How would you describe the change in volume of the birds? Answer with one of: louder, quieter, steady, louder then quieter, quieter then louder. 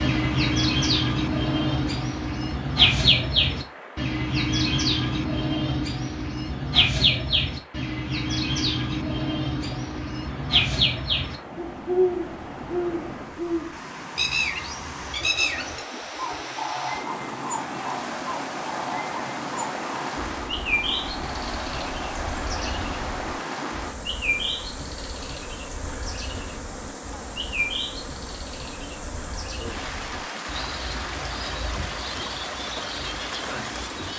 quieter.